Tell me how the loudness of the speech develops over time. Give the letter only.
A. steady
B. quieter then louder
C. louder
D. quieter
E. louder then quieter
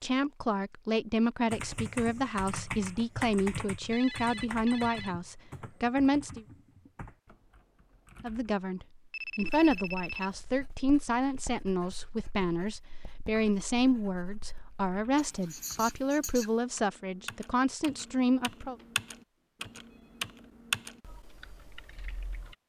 A.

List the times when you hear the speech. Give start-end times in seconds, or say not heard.
0.0-6.5, 8.2-18.8.